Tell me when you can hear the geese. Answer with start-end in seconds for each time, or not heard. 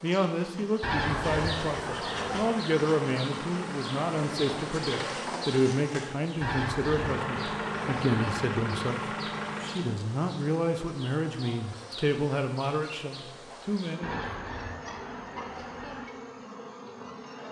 0.8-2.5, 6.4-8.4, 14.0-16.1.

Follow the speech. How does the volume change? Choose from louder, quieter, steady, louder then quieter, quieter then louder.
steady.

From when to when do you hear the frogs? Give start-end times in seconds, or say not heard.
not heard.